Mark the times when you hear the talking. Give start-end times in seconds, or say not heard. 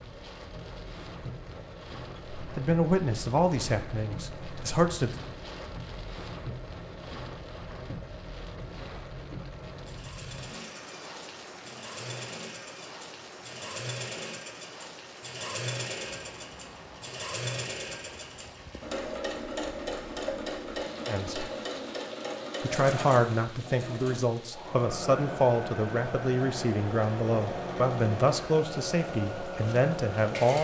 2.4-5.2, 21.1-21.5, 22.6-30.5.